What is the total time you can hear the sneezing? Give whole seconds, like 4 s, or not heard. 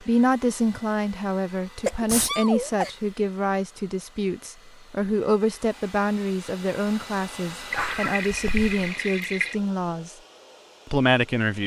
2 s.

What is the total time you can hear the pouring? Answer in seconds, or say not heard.
2 s.